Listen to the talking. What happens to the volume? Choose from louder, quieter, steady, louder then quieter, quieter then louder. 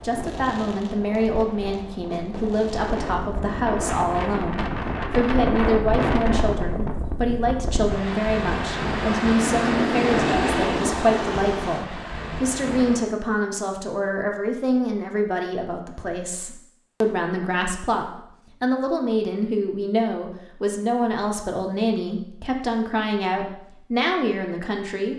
steady.